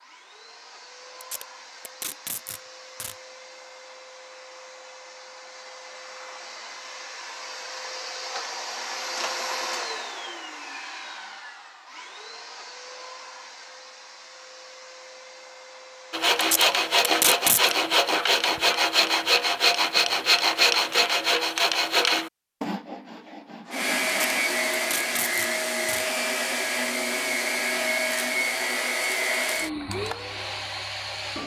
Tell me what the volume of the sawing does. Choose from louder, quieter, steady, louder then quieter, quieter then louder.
quieter.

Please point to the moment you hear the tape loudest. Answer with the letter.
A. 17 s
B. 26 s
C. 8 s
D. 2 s
A.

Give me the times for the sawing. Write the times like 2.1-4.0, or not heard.
16.1-24.4.